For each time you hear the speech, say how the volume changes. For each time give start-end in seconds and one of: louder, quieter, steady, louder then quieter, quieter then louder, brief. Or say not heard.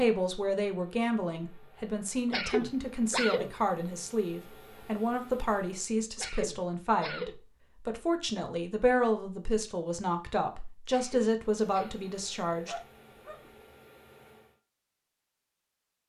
0.0-12.8 steady.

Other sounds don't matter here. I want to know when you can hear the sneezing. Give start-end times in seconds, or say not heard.
2.3-3.5, 6.2-7.3, 10.8-11.9.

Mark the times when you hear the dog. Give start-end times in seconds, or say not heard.
12.1-13.5.